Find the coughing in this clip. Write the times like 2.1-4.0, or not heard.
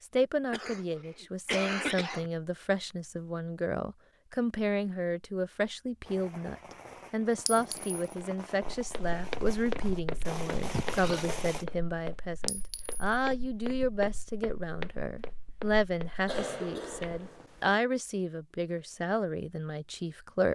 0.5-2.3, 10.2-11.2, 16.2-17.8.